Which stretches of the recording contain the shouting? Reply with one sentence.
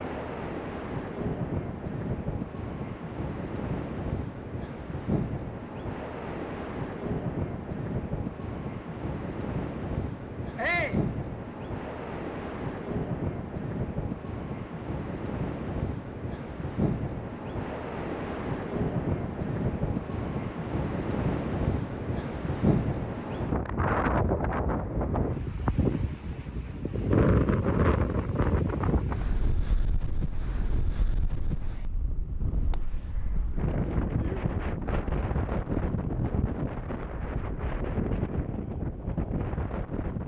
You can hear the shouting from 10.6 to 11.1 s.